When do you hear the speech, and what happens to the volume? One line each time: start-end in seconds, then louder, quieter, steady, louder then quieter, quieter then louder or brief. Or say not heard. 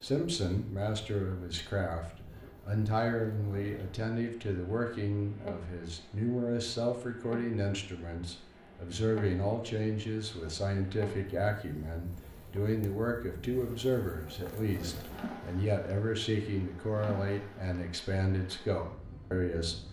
0.0-19.8 steady.